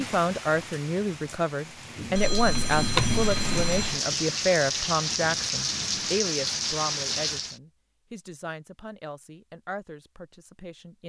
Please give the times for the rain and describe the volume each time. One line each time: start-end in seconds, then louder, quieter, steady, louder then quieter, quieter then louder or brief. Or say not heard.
0.0-7.6 louder.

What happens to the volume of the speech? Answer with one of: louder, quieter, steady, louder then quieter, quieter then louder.
quieter.